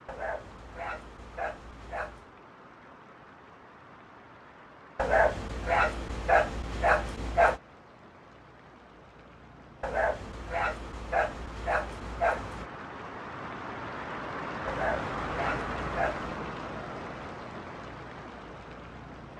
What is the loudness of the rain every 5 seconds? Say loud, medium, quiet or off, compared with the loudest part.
quiet, quiet, loud, loud.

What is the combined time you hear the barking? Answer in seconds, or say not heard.
9 s.